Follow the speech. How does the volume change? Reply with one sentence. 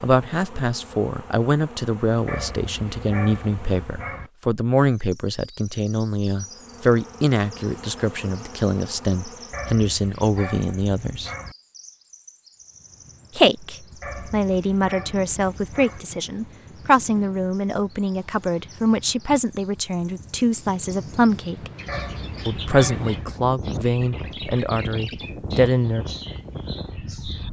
The loudness of the speech stays about the same.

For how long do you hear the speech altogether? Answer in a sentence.
The speech can be heard for 23 seconds in total.